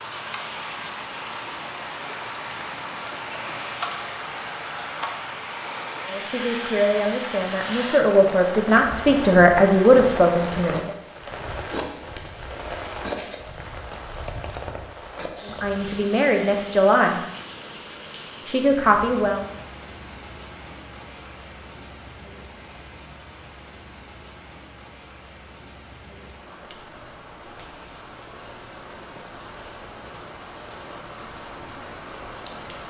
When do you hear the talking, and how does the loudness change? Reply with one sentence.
The talking can be heard from 6.0 to 10.9 s, getting louder; briefly from 15.4 to 17.2 s; and briefly from 18.4 to 19.4 s.